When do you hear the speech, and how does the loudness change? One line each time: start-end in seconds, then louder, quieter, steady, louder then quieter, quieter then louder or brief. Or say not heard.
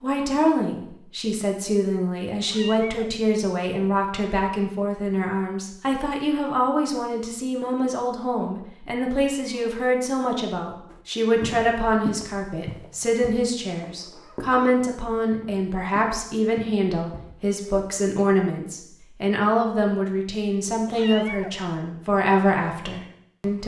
0.0-23.6 steady.